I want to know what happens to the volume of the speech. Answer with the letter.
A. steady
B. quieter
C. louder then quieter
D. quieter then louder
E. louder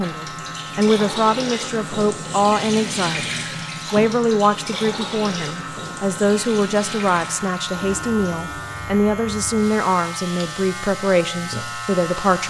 A.